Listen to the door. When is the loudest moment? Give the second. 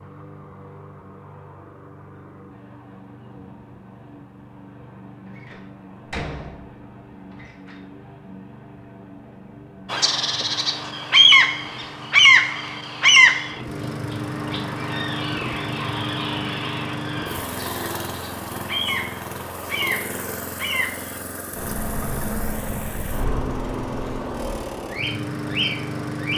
6 s.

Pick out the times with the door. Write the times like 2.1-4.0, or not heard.
5.3-7.8.